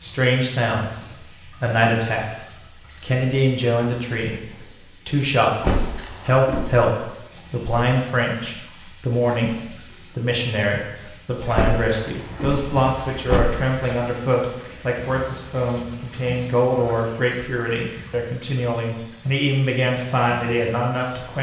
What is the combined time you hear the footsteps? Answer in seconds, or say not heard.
not heard.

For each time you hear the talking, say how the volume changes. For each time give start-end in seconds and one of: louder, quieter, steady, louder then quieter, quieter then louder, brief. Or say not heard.
0.0-21.3 steady.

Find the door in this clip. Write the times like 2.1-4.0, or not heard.
5.6-6.8, 11.6-14.0.